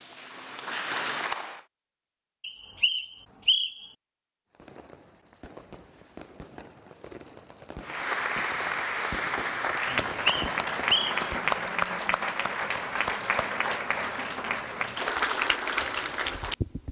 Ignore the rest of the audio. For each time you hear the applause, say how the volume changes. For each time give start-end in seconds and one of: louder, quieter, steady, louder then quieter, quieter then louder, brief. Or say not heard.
0.0-1.6 brief
7.8-16.8 steady.